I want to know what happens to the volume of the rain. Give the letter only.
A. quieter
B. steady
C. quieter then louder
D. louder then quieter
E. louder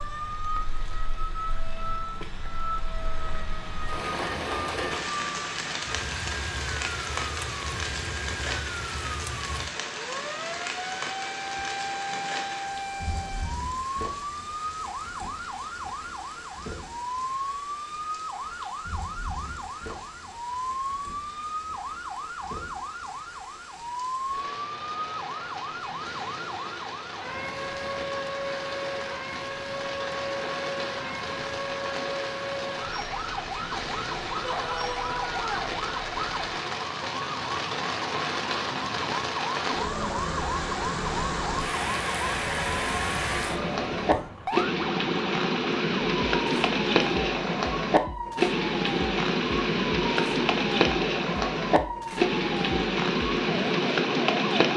C.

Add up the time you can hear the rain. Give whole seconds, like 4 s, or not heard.
55 s.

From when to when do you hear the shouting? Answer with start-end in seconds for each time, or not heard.
34.4-35.6.